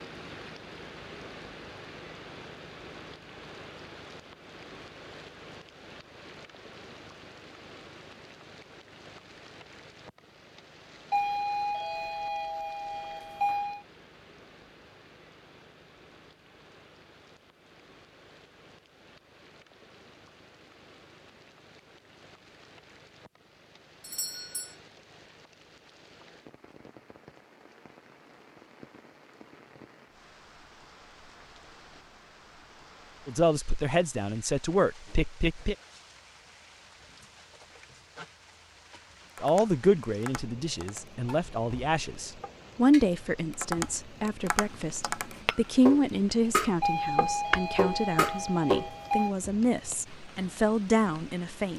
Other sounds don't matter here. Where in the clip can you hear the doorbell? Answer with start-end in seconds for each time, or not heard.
11.1-13.8, 24.0-24.7, 46.8-49.4.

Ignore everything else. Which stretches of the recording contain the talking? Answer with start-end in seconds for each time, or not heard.
33.2-35.8, 39.4-51.7.